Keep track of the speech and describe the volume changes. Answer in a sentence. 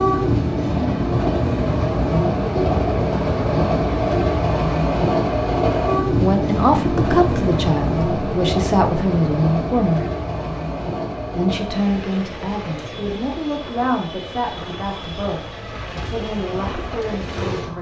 The loudness of the speech goes down.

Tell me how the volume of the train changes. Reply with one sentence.
The volume of the train goes down.